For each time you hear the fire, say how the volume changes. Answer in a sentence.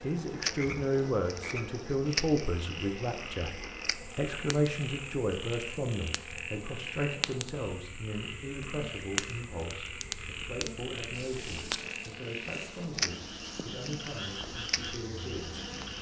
The fire can be heard from 0.1 to 15.9 s, getting quieter then louder.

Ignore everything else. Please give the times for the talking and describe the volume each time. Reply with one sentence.
You can hear the talking from 0.0 to 15.7 s, getting quieter.